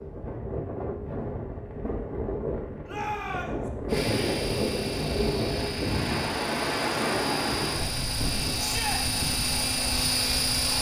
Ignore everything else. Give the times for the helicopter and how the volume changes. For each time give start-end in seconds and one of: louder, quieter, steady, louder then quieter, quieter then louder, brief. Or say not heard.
3.9-10.7 louder.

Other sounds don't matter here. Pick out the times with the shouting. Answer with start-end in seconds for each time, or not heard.
2.9-3.7, 8.6-9.0.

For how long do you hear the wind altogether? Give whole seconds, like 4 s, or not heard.
11 s.